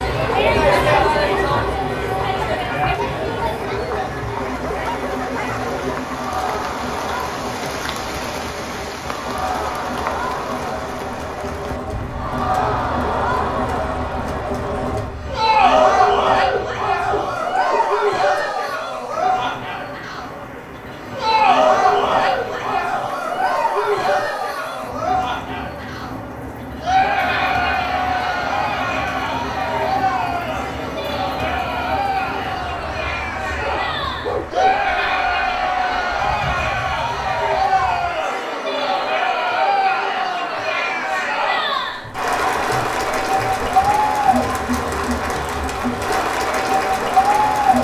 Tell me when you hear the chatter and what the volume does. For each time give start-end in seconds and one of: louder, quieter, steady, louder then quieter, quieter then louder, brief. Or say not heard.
0.0-47.7 steady.